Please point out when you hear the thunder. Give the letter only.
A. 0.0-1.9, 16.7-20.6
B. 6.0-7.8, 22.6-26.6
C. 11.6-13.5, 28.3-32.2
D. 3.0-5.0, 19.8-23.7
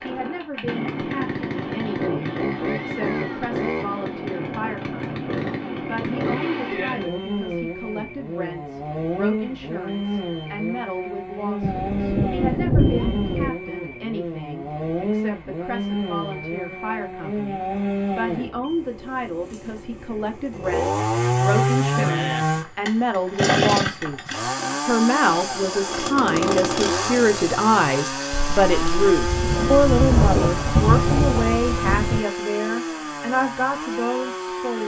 C.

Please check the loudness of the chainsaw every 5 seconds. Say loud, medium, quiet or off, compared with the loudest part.
medium, medium, medium, medium, loud, loud, medium.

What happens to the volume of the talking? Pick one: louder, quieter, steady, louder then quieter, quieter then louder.
louder.